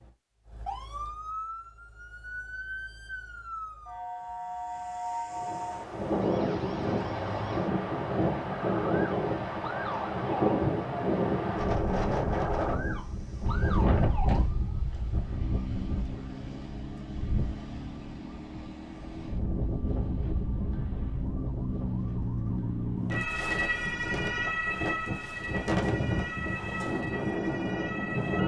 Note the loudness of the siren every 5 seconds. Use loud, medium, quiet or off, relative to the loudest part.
medium, medium, medium, medium, loud, medium.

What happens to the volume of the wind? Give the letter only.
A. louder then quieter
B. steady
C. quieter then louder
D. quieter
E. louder
C.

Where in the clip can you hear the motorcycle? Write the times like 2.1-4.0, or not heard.
not heard.